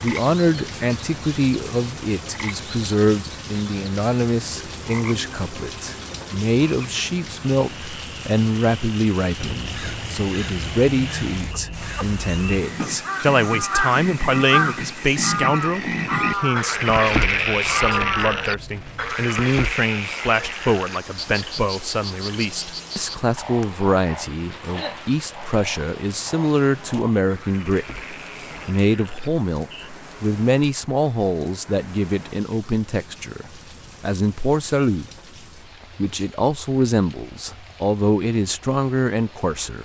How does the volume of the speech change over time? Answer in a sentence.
The volume of the speech stays about the same.